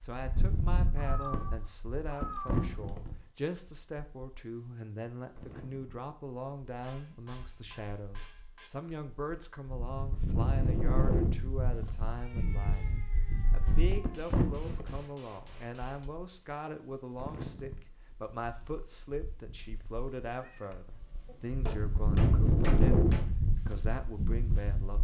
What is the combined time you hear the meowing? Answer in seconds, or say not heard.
5 s.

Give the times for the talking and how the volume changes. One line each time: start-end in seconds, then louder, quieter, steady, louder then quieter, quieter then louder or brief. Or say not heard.
0.0-24.9 steady.